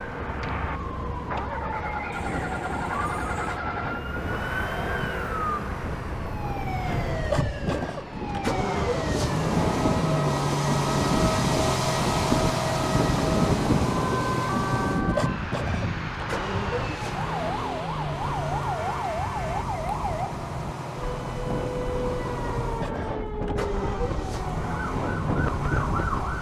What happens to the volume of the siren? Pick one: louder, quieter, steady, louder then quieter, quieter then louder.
steady.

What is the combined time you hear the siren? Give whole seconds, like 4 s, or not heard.
26 s.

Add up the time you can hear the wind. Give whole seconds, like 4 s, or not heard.
26 s.